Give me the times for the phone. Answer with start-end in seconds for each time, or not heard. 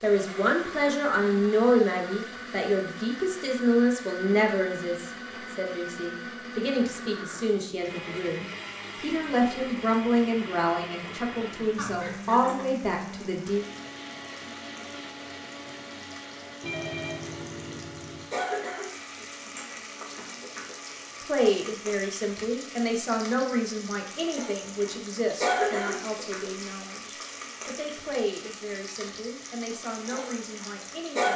11.8-12.7, 16.6-18.2.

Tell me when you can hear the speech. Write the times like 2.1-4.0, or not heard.
0.0-13.7, 21.2-31.3.